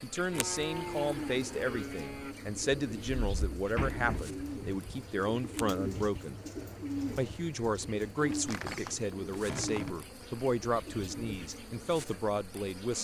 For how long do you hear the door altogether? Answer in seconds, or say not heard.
3 s.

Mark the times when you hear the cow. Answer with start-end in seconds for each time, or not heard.
0.3-2.4.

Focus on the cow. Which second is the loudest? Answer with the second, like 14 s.
1 s.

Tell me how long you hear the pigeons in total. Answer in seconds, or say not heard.
12 s.